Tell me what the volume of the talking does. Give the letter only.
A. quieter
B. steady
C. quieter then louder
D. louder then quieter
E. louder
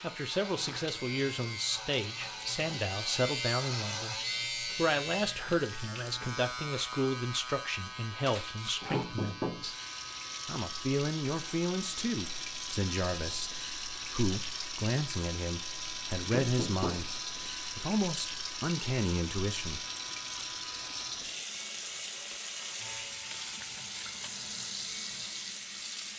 B.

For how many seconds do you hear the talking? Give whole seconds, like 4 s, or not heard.
19 s.